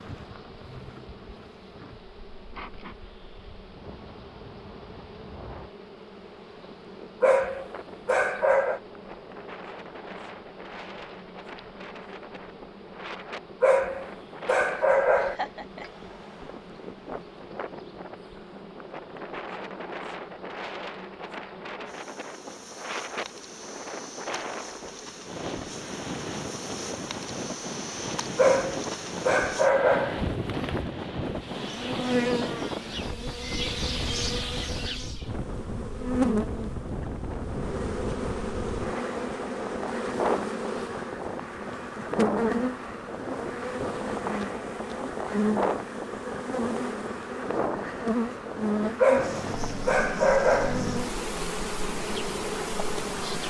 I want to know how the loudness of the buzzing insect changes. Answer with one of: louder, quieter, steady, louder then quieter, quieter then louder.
louder.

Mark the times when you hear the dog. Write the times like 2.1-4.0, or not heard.
7.2-8.8, 13.6-15.4, 28.4-30.3, 49.0-50.9.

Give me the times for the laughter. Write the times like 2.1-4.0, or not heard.
15.2-15.8.